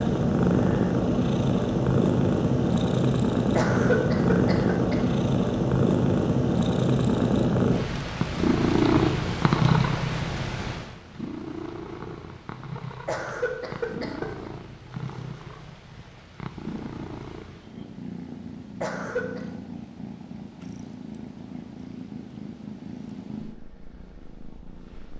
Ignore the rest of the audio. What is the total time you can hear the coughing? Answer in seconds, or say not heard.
3 s.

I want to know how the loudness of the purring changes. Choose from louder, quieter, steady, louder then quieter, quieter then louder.
quieter.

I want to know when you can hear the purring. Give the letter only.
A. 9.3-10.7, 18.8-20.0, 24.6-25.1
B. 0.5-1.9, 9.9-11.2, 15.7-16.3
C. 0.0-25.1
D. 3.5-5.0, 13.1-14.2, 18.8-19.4
C.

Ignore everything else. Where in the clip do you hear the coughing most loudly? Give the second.
4 s.